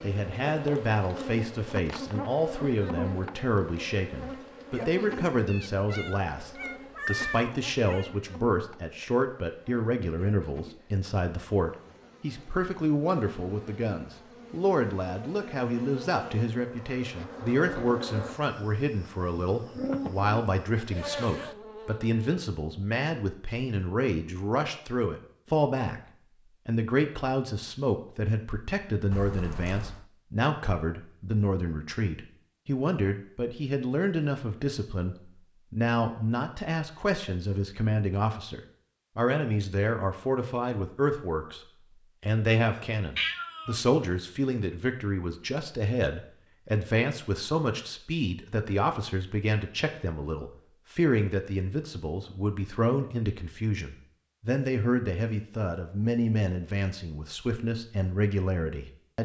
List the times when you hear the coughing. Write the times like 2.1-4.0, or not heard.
not heard.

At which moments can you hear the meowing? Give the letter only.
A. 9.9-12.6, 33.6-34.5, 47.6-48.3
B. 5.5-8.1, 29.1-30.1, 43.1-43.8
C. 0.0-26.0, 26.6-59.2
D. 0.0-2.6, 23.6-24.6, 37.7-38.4
B.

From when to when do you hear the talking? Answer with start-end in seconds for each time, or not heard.
0.0-26.0, 26.6-59.2.